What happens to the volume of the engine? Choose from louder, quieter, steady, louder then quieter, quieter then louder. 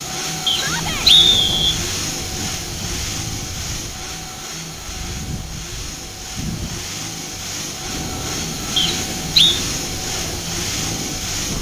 quieter then louder.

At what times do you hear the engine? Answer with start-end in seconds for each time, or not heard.
0.0-11.5.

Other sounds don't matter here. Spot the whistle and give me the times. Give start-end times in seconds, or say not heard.
0.5-1.8, 8.8-9.6.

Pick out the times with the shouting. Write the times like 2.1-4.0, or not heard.
0.5-1.1.